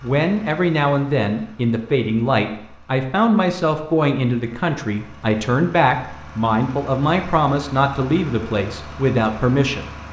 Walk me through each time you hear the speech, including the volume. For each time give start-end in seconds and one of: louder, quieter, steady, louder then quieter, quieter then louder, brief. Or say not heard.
0.0-9.9 steady.